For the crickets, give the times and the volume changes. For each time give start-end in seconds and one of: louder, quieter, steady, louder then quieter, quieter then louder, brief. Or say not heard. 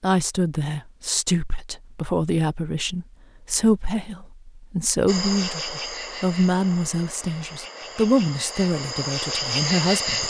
5.0-10.2 quieter then louder.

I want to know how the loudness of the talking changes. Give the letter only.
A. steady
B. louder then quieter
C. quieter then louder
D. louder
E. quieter
A.